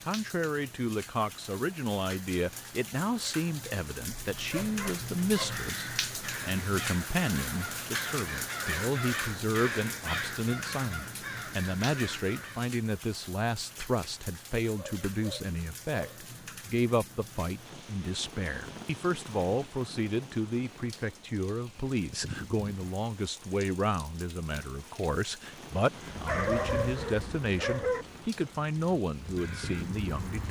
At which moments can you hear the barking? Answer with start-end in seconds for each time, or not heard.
4.3-5.7, 14.8-16.2, 26.2-28.1.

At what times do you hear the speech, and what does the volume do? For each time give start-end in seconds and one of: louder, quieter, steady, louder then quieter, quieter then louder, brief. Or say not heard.
0.1-30.4 steady.